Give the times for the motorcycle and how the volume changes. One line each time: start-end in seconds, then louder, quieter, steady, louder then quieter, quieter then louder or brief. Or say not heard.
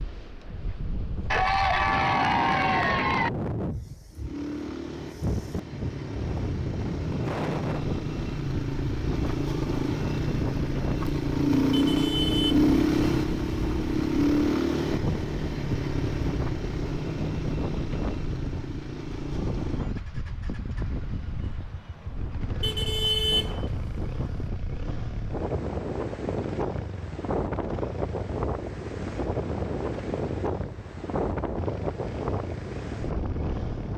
4.1-33.9 louder then quieter.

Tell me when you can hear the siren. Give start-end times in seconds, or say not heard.
not heard.